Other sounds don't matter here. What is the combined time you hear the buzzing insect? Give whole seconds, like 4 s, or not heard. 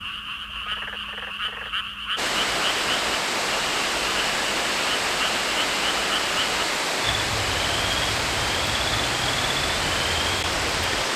not heard.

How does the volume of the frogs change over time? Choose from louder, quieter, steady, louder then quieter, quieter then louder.
steady.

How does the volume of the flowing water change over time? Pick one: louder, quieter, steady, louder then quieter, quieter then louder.
steady.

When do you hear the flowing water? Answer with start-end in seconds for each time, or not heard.
2.1-11.1.